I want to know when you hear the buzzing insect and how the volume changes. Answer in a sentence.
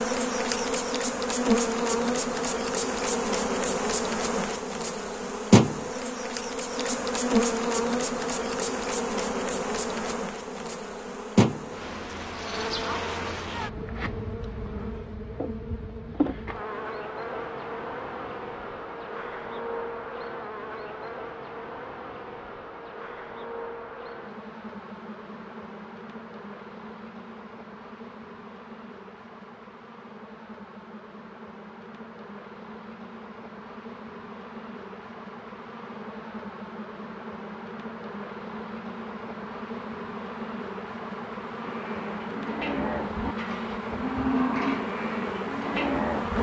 The buzzing insect can be heard from 0.0 to 46.3 s, getting quieter then louder.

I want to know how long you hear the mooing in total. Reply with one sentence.
The mooing can be heard for 5 seconds in total.